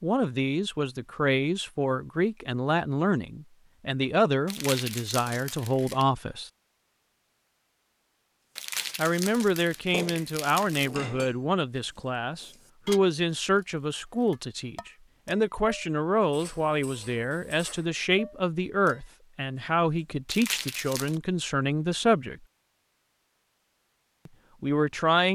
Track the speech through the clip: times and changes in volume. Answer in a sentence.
You can hear the speech from 0.0 to 6.5 s, at a steady volume; from 8.9 to 22.4 s, at a steady volume; and briefly from 24.2 to 25.3 s.